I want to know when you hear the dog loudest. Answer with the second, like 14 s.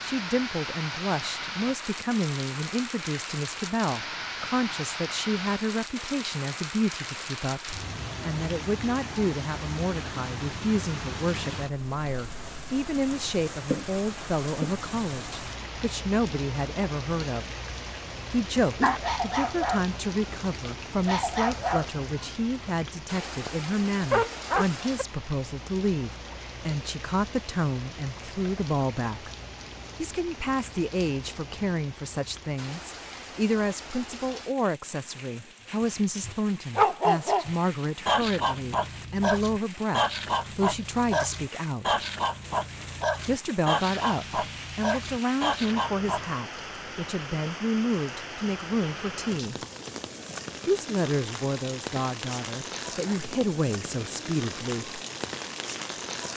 37 s.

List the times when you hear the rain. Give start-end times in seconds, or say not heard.
0.0-56.3.